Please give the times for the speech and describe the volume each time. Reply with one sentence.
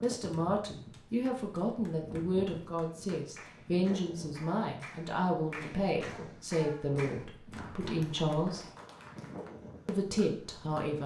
The speech can be heard from 0.0 to 8.7 s, at a steady volume; and briefly from 9.8 to 11.0 s.